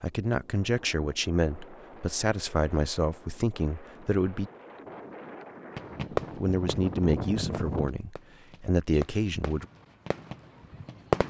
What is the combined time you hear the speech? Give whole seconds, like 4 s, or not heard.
8 s.